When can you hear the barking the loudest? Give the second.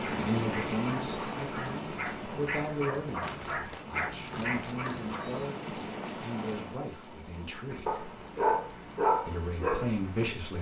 9 s.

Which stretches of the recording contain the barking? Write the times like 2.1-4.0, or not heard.
0.0-5.5, 7.7-10.5.